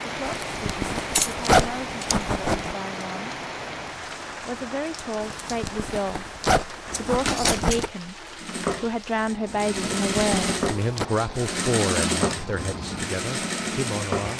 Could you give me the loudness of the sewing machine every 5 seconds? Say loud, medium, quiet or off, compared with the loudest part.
off, loud, loud.